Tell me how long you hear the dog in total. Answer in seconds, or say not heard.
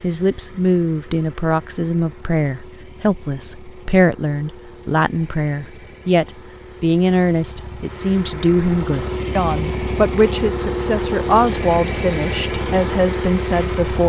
not heard.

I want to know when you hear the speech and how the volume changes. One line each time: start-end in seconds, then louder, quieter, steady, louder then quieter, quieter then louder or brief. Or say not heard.
0.0-14.0 steady.